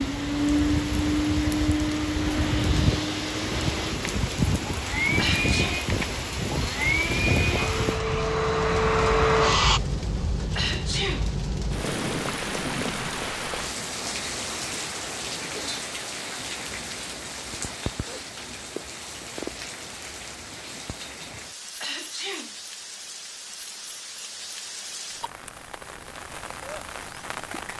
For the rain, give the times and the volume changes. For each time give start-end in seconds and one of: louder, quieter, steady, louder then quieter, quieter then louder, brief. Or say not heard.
0.0-27.7 quieter.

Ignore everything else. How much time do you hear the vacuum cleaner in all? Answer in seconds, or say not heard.
10 s.